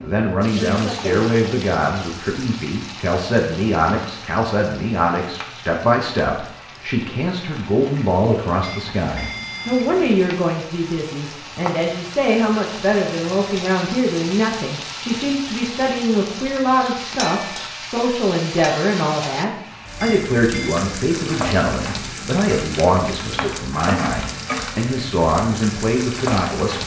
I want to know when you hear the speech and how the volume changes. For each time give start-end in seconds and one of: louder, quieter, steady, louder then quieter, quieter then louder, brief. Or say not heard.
0.0-26.8 steady.